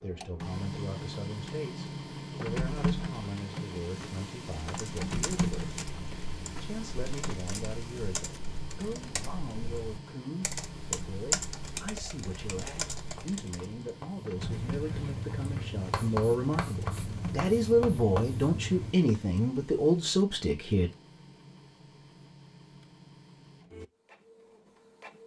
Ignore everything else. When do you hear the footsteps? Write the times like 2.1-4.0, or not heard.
not heard.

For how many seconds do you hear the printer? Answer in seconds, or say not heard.
25 s.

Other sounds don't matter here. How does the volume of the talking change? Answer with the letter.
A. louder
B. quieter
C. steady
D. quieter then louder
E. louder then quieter
A.